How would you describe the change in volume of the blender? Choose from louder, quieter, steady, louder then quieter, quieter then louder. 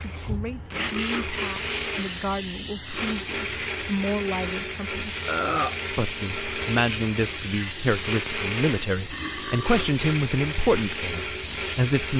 steady.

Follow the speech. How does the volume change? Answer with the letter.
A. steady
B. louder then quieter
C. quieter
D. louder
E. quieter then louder
D.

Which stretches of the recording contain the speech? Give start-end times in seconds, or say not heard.
0.1-5.2, 5.9-12.1.